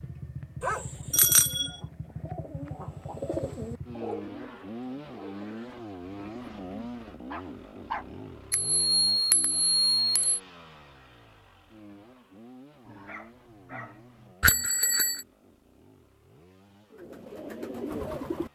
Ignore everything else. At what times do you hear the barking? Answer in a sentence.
You can hear the barking from 0.6 to 1.3 s, from 7.3 to 8.2 s and from 12.8 to 14.3 s.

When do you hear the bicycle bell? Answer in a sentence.
You can hear the bicycle bell from 1.1 to 1.8 s, from 8.5 to 10.4 s and from 14.4 to 15.2 s.